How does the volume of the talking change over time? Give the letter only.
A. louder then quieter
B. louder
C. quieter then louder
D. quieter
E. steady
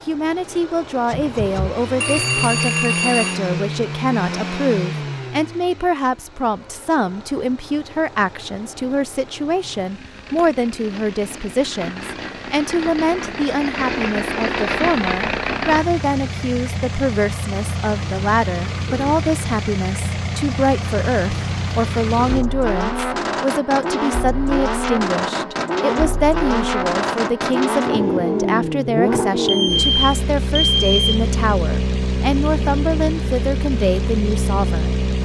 E.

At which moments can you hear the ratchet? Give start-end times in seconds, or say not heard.
not heard.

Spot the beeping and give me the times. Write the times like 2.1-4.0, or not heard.
2.0-3.4, 29.4-31.2.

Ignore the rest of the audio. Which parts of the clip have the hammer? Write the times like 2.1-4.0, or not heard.
not heard.